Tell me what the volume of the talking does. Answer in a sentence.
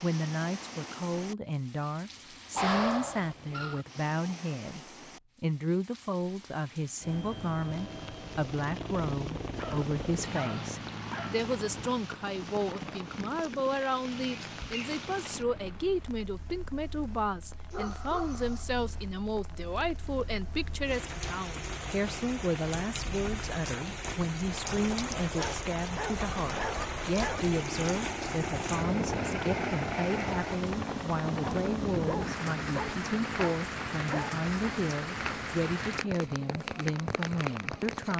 The volume of the talking stays about the same.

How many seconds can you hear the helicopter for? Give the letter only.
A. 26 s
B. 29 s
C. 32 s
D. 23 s
D.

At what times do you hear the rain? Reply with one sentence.
The rain can be heard from 0.0 to 38.1 s.